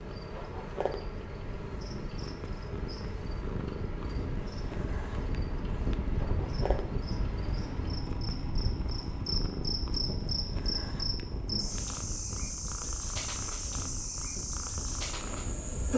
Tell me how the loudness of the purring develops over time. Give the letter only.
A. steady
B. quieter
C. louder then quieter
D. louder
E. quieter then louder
A.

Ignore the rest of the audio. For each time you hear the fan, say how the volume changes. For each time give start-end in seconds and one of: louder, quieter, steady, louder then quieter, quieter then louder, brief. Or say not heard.
0.0-15.9 louder then quieter.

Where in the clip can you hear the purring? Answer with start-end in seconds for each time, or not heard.
0.1-15.7.